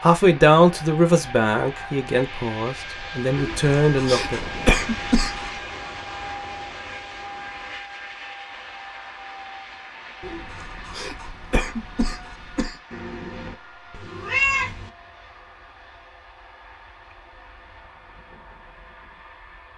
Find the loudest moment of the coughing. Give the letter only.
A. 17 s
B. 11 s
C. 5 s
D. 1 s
C.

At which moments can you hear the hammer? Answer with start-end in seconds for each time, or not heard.
not heard.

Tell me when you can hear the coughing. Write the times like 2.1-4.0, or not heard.
3.4-5.5, 10.2-12.8.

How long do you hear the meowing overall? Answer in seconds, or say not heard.
2 s.